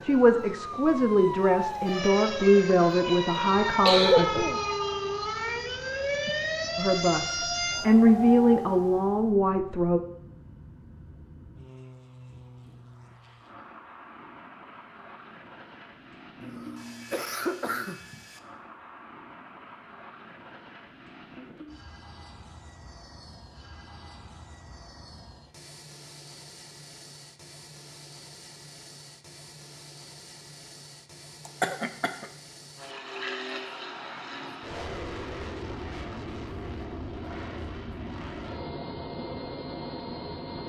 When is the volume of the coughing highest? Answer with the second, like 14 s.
4 s.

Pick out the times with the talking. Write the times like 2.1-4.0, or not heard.
0.0-4.5, 6.8-10.0.